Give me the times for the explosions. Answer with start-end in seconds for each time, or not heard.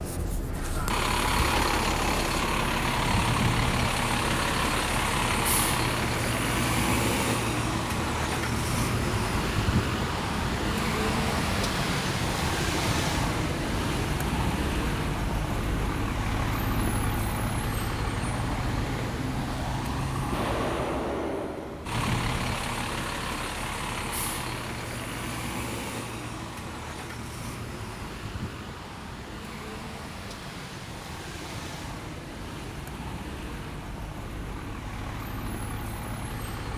20.3-21.9.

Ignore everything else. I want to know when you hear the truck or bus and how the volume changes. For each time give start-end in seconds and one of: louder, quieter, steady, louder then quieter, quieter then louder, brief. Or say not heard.
0.0-36.7 quieter.